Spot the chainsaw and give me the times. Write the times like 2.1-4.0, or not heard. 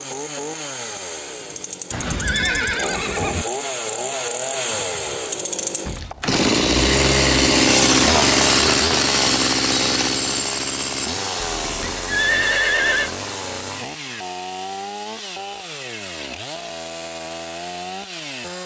0.0-18.6.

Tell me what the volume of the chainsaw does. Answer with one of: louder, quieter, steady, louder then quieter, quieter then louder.
louder then quieter.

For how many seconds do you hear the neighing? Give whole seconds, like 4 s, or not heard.
3 s.